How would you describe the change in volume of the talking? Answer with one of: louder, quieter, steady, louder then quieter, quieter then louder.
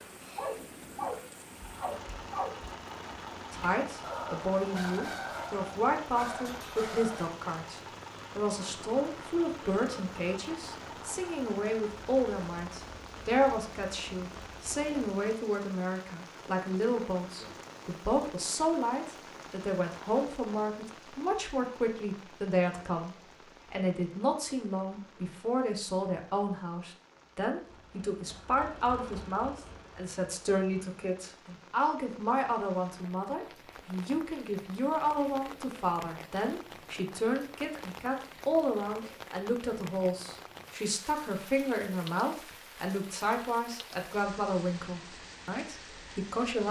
steady.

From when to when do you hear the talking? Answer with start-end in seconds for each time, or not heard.
3.5-46.6.